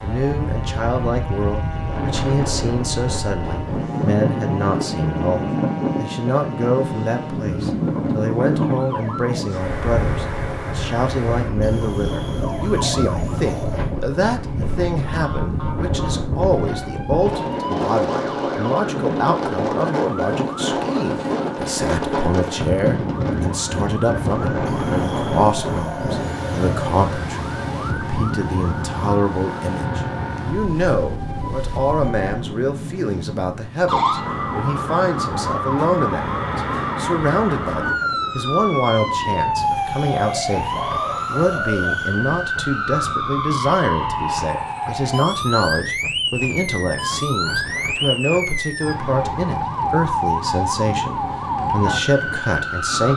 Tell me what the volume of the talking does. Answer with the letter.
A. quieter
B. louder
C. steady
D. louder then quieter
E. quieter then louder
C.